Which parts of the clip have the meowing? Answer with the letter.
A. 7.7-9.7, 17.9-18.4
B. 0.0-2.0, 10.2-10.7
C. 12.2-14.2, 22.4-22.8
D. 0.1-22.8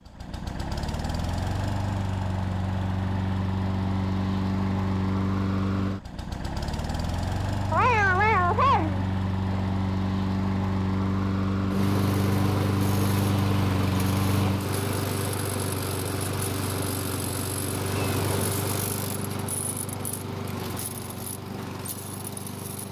A.